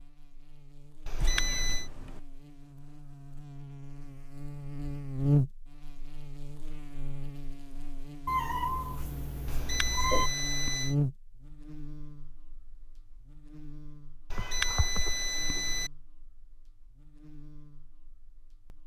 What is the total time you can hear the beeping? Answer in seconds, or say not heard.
4 s.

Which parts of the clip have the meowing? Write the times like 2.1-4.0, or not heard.
1.1-2.2, 8.2-10.3, 14.3-15.6.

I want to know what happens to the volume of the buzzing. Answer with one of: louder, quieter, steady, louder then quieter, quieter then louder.
louder then quieter.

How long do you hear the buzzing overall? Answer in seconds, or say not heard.
19 s.